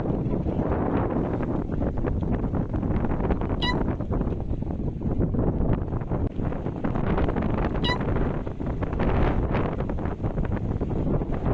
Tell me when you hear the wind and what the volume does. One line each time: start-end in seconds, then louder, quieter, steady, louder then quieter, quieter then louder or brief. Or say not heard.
0.0-11.4 steady.